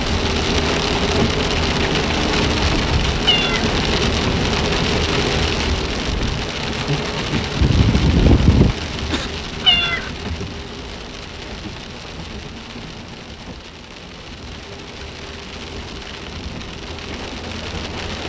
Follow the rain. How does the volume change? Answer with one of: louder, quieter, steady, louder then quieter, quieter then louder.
quieter.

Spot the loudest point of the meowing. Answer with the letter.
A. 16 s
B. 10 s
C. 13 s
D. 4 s
B.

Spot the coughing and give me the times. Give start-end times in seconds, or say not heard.
7.5-9.3.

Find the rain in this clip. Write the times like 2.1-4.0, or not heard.
0.0-18.2.